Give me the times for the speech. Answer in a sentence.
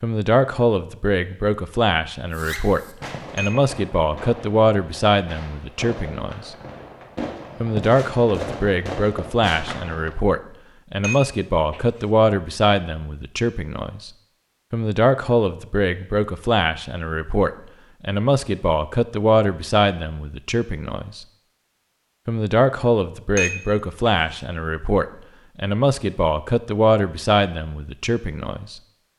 The speech can be heard from 0.0 to 6.5 s, from 7.6 to 14.1 s, from 14.7 to 21.2 s and from 22.2 to 28.8 s.